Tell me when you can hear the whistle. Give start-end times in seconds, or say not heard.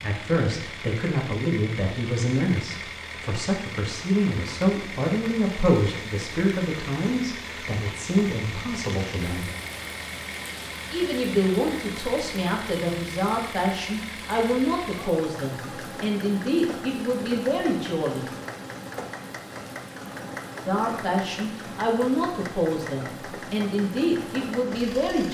not heard.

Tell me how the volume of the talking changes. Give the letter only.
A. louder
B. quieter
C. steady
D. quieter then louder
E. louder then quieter
C.